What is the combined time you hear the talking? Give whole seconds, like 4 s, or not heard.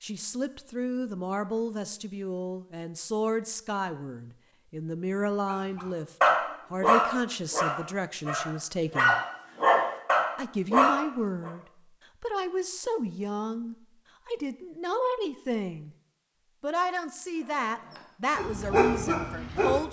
18 s.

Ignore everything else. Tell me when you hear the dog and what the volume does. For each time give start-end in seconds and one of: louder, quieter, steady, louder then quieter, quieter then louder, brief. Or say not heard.
5.5-11.5 quieter then louder
17.4-19.8 brief.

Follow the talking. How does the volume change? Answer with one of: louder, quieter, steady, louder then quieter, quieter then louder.
steady.